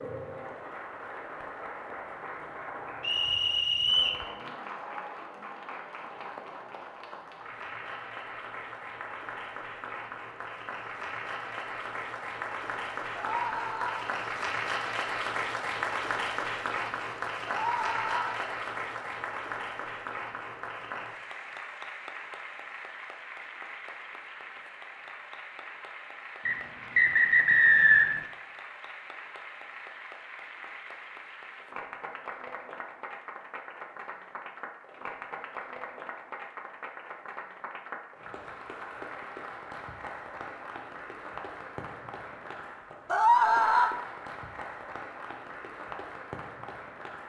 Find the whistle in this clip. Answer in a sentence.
The whistle can be heard from 3.0 to 4.2 s and from 26.4 to 28.2 s.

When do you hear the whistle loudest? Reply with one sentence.
The loudest moment of the whistle is at 28 seconds.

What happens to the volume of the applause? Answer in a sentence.
The loudness of the applause goes up, then down.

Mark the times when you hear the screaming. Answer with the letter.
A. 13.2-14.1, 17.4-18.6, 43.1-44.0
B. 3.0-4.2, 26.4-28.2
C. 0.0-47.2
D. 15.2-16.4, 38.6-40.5
A.